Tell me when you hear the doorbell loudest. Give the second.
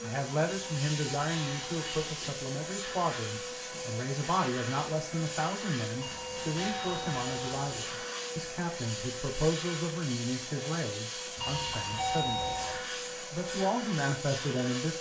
12 s.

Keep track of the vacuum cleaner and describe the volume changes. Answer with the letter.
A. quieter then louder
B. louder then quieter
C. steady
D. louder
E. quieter
C.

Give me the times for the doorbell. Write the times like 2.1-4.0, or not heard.
0.5-2.3, 6.0-7.8, 11.3-12.8.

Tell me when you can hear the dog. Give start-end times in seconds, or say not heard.
not heard.